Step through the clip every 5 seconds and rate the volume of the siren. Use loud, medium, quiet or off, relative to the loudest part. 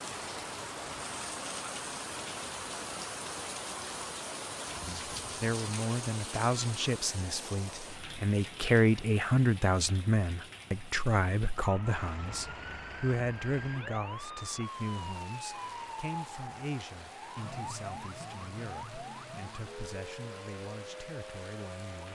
off, off, loud, loud, loud.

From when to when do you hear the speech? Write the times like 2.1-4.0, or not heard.
4.8-22.0.